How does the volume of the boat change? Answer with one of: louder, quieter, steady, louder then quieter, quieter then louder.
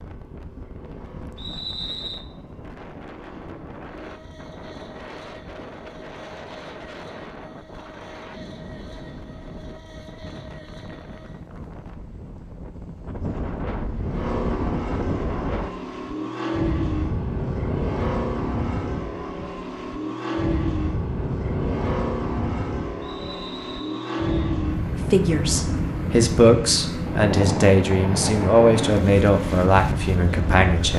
louder.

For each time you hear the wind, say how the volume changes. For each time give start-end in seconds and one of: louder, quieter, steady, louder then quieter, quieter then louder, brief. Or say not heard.
0.0-30.7 louder.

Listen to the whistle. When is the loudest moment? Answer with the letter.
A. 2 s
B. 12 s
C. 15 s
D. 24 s
A.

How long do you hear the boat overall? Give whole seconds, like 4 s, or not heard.
31 s.